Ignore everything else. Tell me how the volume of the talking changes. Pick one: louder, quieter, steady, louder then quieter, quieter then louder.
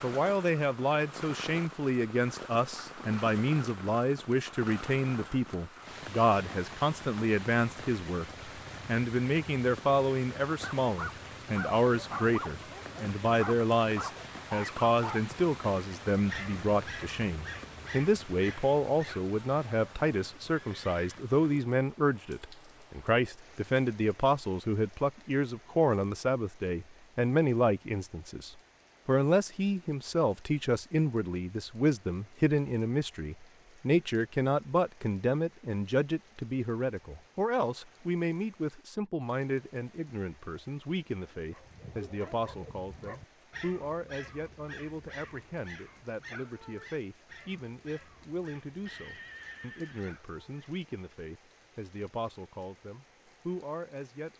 quieter.